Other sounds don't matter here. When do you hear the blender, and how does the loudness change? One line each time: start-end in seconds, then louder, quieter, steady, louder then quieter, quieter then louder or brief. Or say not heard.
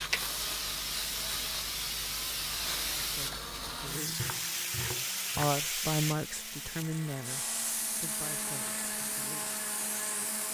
0.0-10.4 quieter then louder.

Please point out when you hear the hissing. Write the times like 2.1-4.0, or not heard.
0.0-10.4.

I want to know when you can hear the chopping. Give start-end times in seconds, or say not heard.
4.2-5.5.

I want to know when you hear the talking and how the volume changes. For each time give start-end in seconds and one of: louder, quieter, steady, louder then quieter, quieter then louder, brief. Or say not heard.
2.7-4.3 brief
5.3-9.6 quieter.